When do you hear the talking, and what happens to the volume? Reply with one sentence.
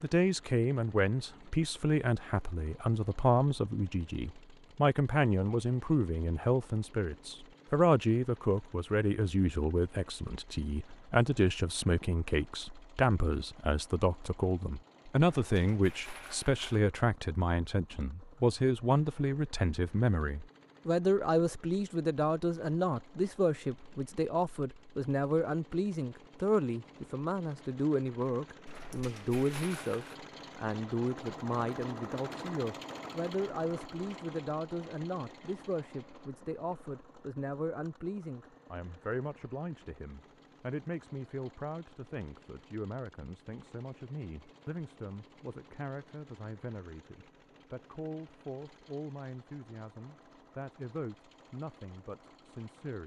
You can hear the talking from 0.0 to 53.0 s, getting quieter.